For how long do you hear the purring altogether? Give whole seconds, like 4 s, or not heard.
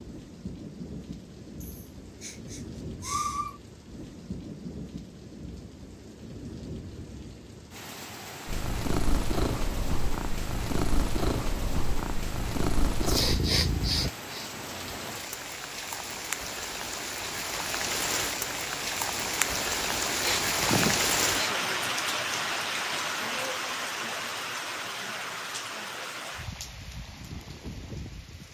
6 s.